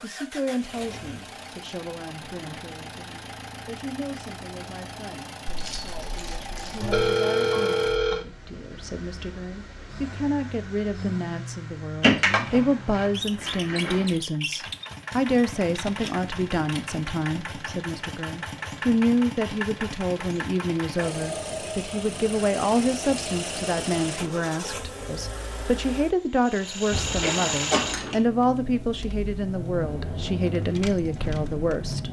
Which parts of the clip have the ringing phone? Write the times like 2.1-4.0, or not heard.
6.8-8.2.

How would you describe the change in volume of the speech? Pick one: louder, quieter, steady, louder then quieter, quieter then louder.
louder.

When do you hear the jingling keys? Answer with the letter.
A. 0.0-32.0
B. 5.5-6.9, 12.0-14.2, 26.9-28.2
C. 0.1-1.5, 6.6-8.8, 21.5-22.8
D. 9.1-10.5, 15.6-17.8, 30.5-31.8
B.